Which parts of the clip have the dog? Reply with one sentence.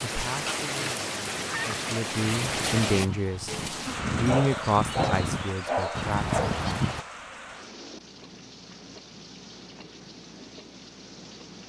The dog can be heard from 4.2 to 6.7 s.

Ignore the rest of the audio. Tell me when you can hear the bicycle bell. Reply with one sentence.
You can't hear the bicycle bell here.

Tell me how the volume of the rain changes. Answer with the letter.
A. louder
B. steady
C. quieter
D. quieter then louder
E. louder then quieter
C.